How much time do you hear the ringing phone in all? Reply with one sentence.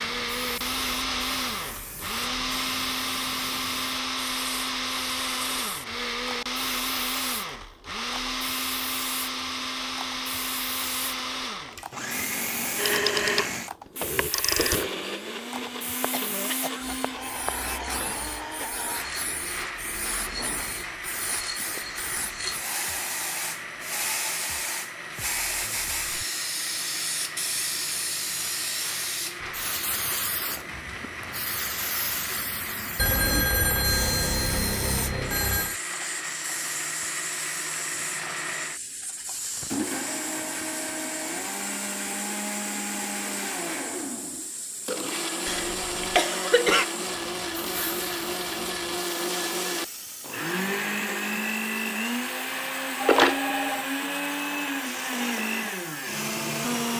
You can hear the ringing phone for 6 seconds altogether.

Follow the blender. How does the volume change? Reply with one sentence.
The loudness of the blender goes down, then up.